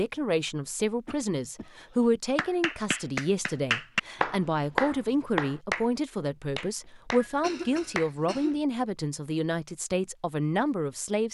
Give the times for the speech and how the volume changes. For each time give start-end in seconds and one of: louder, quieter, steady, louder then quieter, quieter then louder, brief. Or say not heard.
0.0-11.2 steady.